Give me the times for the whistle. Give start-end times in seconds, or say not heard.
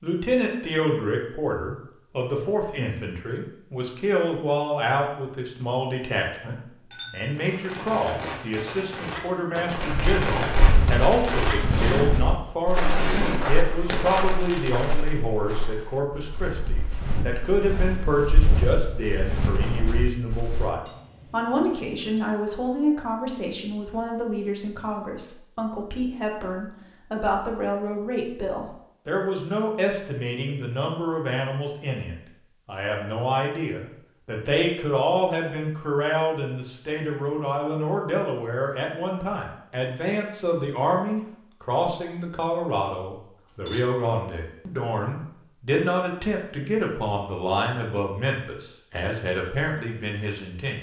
not heard.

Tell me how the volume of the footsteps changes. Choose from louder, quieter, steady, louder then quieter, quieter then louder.
quieter then louder.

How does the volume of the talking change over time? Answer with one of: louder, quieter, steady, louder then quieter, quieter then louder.
steady.